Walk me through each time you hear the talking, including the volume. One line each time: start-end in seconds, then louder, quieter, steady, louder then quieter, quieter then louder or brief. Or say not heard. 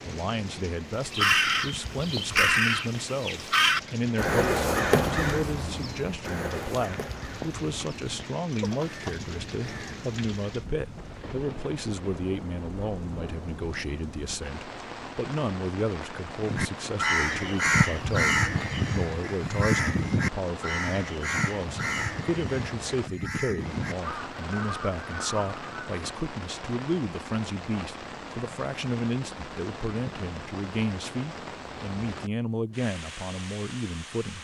0.0-34.3 steady.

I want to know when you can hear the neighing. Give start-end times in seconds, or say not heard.
not heard.